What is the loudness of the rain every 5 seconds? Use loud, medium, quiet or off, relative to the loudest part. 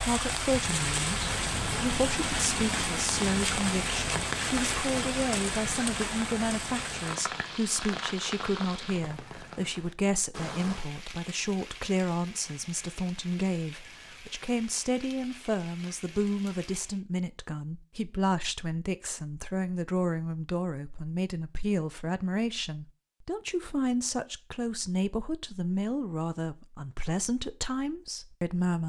loud, medium, quiet, quiet, off, off.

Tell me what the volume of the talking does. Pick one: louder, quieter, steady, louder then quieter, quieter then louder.
steady.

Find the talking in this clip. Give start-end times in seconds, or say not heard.
0.0-28.8.